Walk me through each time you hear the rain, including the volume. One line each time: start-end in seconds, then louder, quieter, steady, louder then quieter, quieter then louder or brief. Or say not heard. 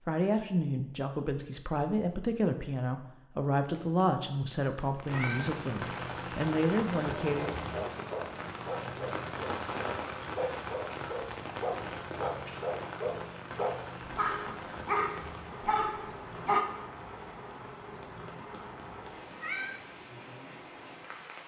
5.0-21.4 quieter.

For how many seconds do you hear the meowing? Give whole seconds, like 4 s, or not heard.
4 s.